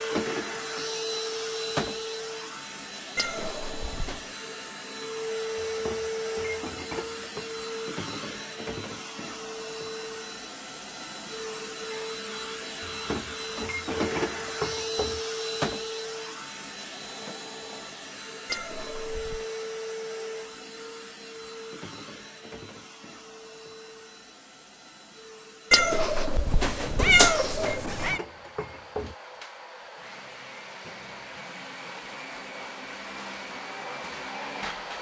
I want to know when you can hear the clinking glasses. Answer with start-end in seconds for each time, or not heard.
5.5-7.5, 12.8-15.2, 26.9-29.1.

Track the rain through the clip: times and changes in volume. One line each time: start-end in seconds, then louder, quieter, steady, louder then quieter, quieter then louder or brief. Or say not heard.
not heard.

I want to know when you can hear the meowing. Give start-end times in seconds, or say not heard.
3.1-4.3, 18.4-19.4, 25.7-28.2.